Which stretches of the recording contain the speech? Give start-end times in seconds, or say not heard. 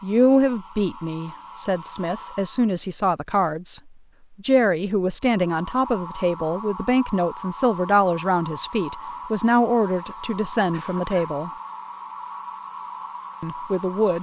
0.0-3.8, 4.4-11.5, 13.4-14.1.